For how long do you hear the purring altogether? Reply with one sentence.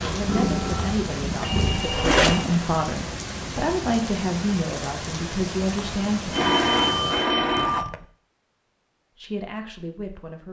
The purring can be heard for 2 seconds in total.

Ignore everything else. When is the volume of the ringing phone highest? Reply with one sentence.
The loudest moment of the ringing phone is at 7 seconds.